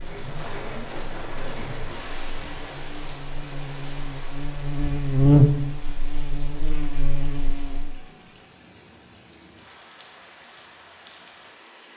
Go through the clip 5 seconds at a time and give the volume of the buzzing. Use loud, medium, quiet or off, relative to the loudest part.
quiet, loud, off.